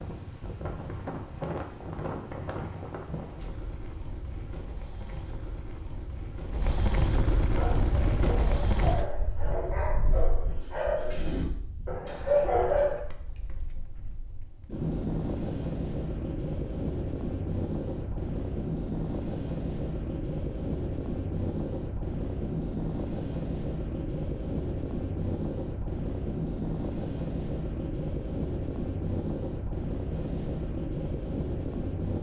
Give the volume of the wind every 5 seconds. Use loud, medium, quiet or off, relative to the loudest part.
medium, loud, medium, loud, loud, loud, loud.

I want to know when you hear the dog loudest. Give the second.
12 s.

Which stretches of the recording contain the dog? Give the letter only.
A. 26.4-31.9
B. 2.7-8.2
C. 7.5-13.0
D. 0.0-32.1
C.